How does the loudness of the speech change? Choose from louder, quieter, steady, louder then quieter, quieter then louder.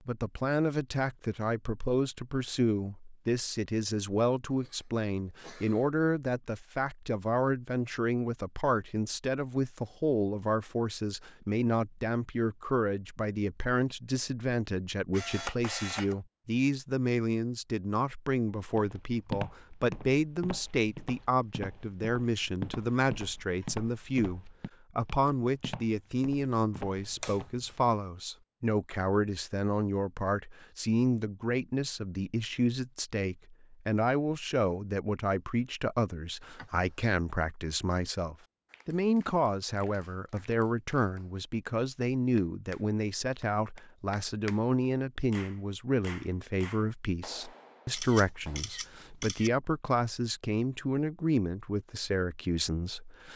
steady.